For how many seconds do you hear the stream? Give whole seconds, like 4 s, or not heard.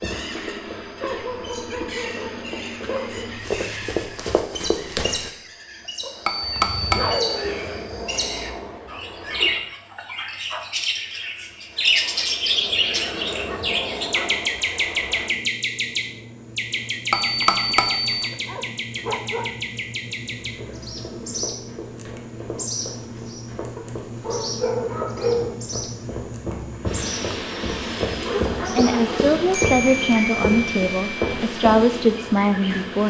not heard.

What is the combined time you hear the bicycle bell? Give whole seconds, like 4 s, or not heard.
4 s.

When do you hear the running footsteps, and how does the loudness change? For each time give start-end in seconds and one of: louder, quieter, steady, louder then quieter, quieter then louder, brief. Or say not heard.
0.0-5.3 louder
20.4-31.8 louder.